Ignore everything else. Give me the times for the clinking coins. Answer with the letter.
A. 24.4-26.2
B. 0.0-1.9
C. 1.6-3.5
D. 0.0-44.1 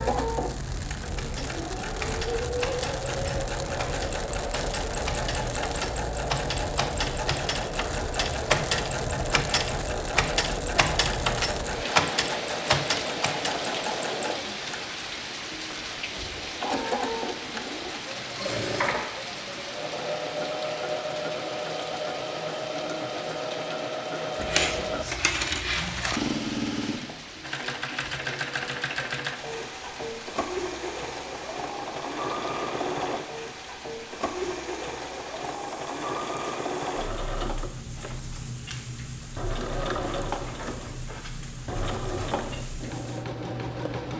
A.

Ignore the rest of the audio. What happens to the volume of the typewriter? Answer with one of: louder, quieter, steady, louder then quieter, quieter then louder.
louder.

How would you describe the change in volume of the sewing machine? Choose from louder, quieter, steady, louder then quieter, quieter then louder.
steady.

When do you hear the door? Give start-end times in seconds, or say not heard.
not heard.